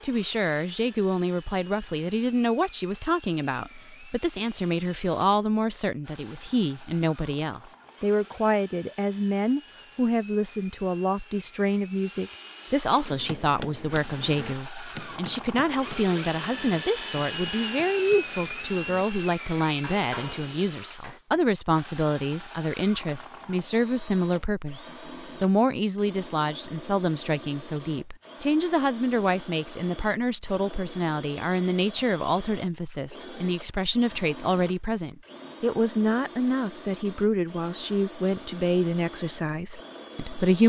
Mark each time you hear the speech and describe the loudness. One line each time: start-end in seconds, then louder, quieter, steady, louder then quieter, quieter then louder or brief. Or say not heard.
0.0-40.6 steady.